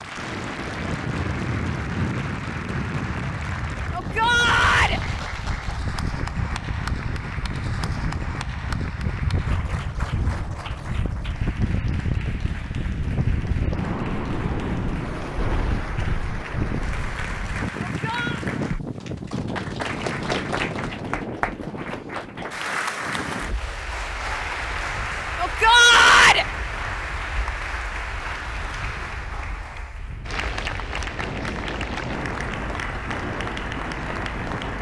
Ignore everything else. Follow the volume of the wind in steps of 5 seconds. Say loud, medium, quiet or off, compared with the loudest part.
loud, loud, loud, loud, medium, quiet, medium.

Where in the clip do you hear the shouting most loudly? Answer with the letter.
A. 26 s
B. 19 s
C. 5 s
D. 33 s
A.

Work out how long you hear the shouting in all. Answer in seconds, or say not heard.
3 s.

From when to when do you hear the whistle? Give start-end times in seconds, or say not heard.
not heard.